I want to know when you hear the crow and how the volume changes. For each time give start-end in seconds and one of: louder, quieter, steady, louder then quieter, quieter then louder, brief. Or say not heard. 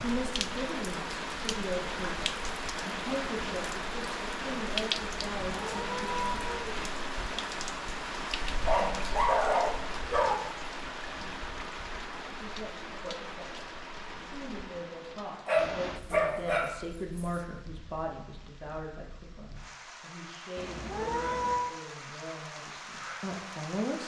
not heard.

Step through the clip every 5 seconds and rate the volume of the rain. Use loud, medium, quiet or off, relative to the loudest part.
loud, loud, medium, quiet, medium.